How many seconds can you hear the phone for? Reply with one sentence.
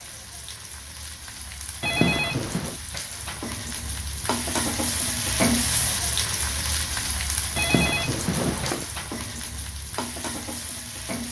You can hear the phone for 2 seconds altogether.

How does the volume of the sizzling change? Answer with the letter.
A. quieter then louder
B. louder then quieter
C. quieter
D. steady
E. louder
B.